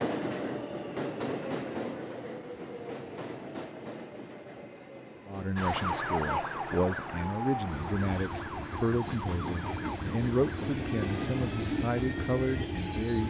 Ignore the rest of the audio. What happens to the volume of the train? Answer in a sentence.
The volume of the train goes down, then up.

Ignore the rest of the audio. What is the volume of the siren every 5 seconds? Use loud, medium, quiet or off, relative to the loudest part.
off, loud, medium.